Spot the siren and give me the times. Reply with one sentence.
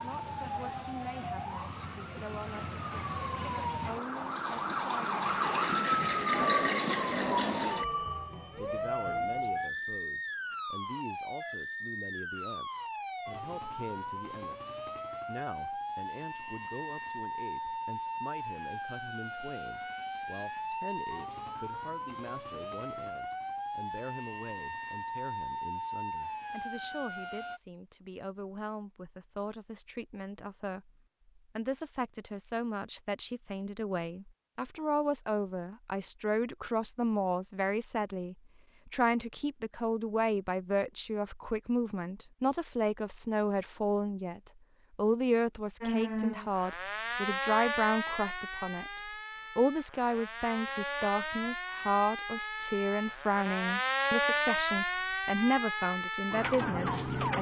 You can hear the siren from 0.0 to 27.6 s and from 45.8 to 57.3 s.